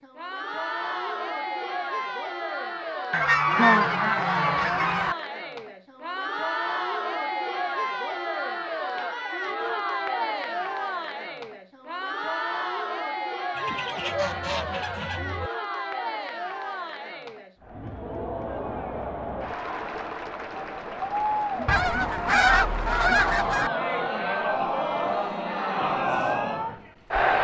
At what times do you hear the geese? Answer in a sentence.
You can hear the geese from 3.1 to 5.2 s, from 13.6 to 15.5 s and from 21.6 to 23.7 s.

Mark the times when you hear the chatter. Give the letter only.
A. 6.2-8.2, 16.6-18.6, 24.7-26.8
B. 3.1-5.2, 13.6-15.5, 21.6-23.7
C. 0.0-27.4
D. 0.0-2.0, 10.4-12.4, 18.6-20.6
C.